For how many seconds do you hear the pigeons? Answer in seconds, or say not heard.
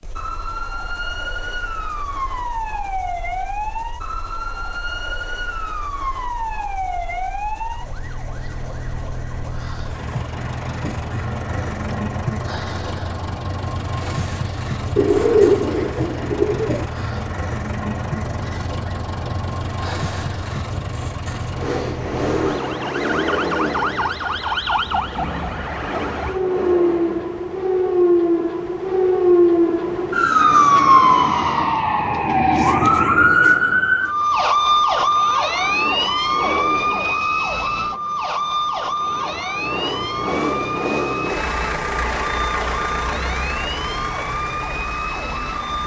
2 s.